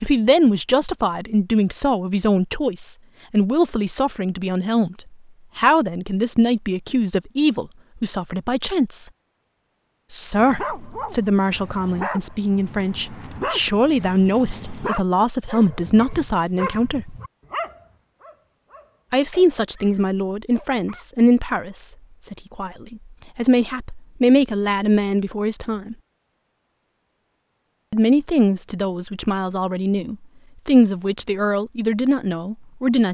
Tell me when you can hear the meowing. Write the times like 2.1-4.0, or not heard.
not heard.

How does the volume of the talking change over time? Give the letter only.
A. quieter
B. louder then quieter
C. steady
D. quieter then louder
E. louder
C.